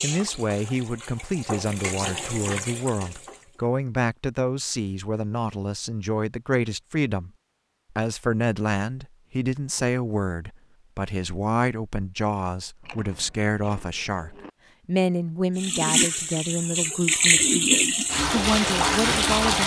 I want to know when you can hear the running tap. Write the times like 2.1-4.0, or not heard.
0.0-3.6, 15.6-19.6.